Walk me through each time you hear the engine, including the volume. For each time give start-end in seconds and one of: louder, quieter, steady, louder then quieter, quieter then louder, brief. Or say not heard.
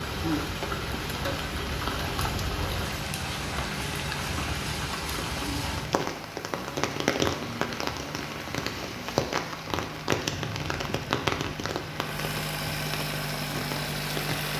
0.0-14.5 louder.